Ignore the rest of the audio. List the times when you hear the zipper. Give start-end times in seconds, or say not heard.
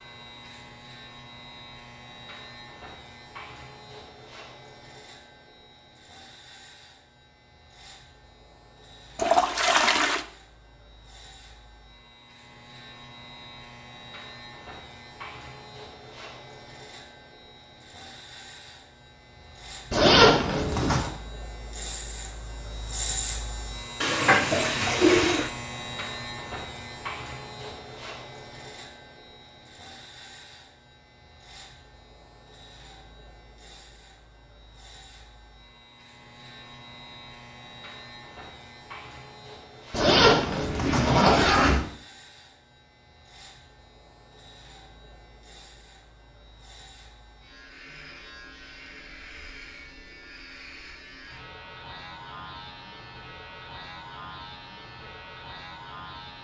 19.9-21.1, 39.9-41.8.